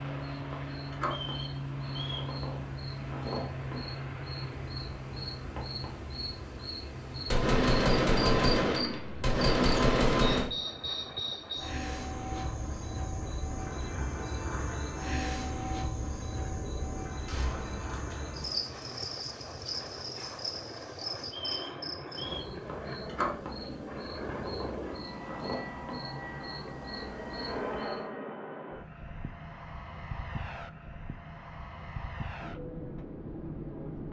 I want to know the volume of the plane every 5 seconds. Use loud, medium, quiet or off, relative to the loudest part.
loud, medium, medium, medium, loud, loud, loud.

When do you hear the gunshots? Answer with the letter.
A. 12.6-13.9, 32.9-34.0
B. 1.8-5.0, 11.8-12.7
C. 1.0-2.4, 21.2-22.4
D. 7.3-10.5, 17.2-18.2
D.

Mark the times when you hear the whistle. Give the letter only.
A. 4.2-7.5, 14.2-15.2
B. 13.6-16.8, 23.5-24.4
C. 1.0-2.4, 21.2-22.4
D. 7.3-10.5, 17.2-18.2
C.